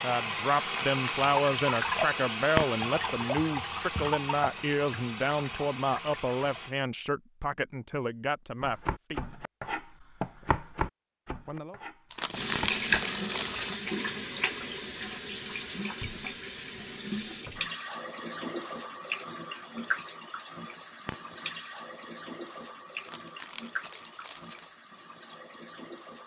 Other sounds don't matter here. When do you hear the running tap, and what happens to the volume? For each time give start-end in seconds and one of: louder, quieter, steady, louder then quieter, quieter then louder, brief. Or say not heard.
0.0-6.8 quieter
12.3-26.2 quieter.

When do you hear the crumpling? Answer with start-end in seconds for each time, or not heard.
0.8-1.3, 12.1-13.8, 23.0-24.7.